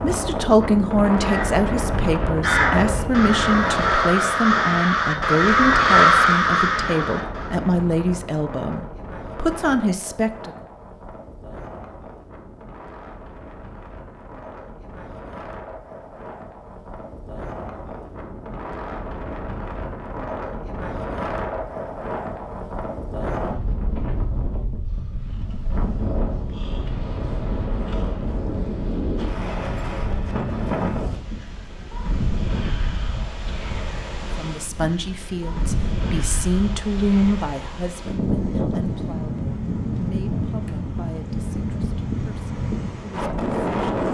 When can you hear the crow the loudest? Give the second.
6 s.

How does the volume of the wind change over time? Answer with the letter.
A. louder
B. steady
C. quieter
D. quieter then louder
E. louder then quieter
D.